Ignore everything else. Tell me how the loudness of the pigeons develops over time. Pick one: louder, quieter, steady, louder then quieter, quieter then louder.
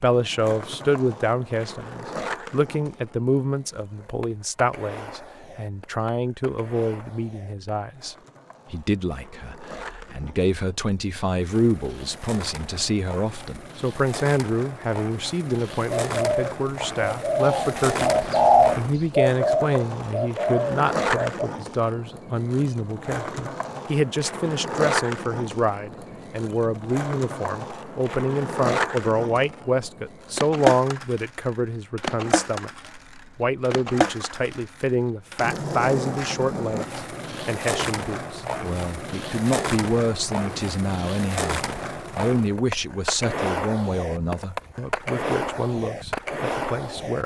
louder then quieter.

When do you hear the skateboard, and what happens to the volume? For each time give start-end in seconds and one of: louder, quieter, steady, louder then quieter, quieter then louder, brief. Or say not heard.
0.0-47.2 louder.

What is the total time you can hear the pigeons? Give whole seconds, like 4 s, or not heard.
6 s.